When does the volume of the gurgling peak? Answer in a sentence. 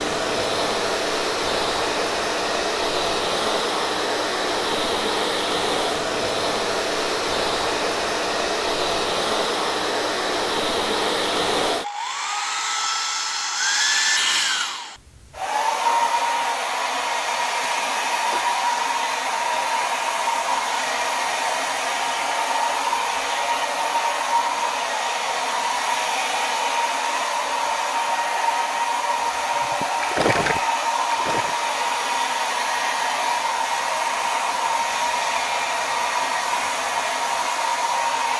The loudest moment of the gurgling is at 30 seconds.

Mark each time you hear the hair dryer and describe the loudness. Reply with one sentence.
You can hear the hair dryer from 0.0 to 38.3 s, at a steady volume.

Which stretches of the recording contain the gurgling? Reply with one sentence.
You can hear the gurgling from 29.6 to 31.6 s.